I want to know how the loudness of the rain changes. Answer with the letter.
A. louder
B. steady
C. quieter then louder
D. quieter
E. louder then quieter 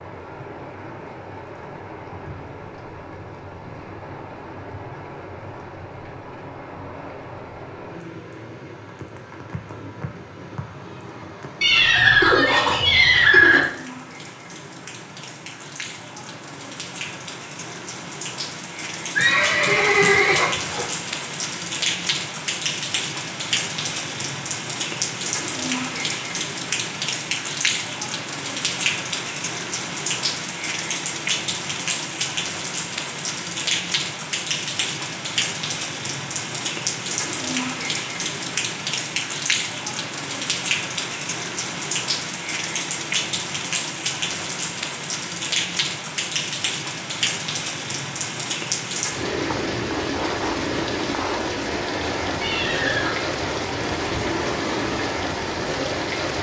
A.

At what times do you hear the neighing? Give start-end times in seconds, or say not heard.
11.6-13.6, 19.1-20.9, 52.4-53.2.